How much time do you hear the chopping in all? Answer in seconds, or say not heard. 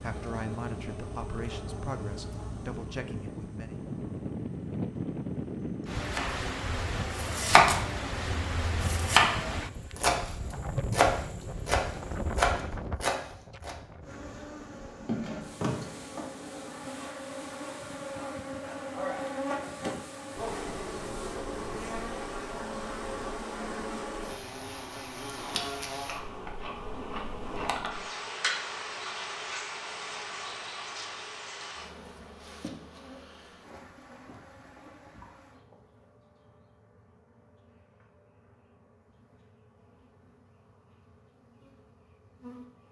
7 s.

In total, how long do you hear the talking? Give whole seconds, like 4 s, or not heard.
4 s.